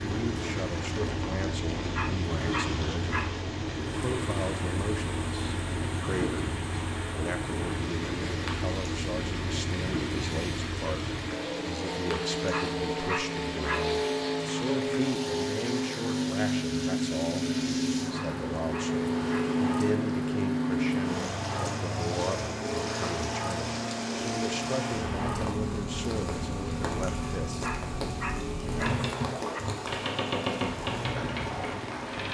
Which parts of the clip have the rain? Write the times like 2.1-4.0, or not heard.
0.0-32.2.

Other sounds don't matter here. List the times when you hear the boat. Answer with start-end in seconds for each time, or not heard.
0.0-32.2.